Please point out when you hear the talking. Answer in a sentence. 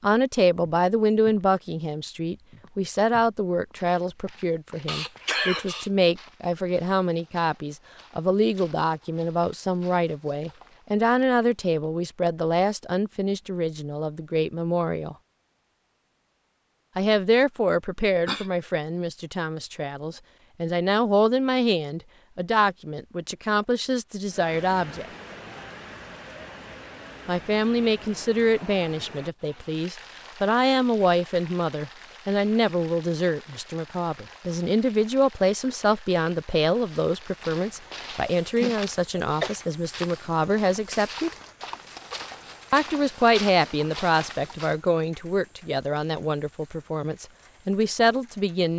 The talking can be heard from 0.0 to 15.2 s, from 16.9 to 25.1 s, from 27.2 to 41.3 s and from 42.7 to 48.7 s.